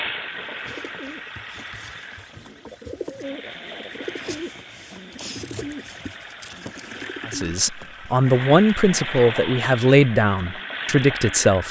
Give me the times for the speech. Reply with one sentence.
You can hear the speech from 7.2 to 11.6 s.